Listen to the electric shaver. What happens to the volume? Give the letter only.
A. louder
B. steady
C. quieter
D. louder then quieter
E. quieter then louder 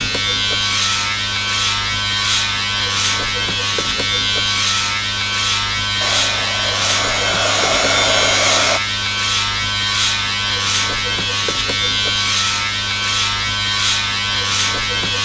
B.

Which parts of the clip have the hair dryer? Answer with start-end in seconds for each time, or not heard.
6.0-8.8.